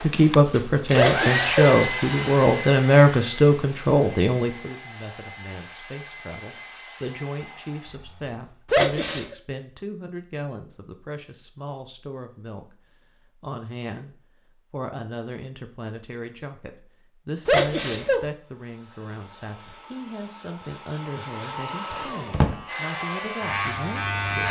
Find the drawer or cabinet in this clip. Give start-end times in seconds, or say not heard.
21.9-22.6.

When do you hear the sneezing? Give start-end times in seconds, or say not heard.
0.9-1.8, 8.7-9.3, 17.4-18.2.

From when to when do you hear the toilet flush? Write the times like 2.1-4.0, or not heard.
not heard.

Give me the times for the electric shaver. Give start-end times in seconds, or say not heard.
22.4-24.4.